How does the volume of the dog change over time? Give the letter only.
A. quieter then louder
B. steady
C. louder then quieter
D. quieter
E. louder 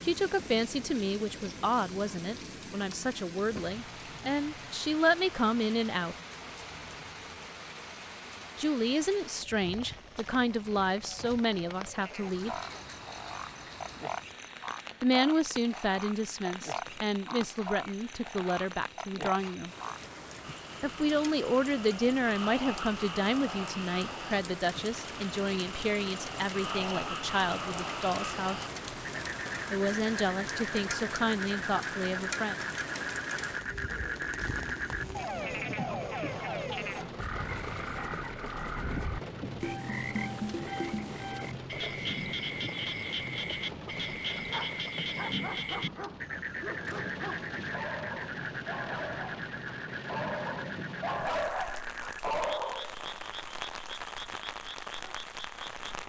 E.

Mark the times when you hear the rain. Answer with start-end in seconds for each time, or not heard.
0.0-56.0.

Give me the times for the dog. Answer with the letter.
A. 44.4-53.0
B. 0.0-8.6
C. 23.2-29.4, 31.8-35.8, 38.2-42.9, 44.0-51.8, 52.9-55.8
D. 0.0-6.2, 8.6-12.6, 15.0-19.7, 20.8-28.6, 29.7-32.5
A.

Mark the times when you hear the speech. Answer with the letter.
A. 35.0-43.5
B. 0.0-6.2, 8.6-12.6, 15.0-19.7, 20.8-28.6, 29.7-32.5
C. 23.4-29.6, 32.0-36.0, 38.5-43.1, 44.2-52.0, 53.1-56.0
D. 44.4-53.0
B.